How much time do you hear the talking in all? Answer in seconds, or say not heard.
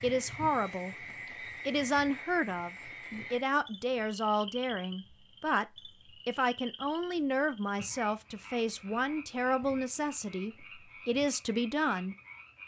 11 s.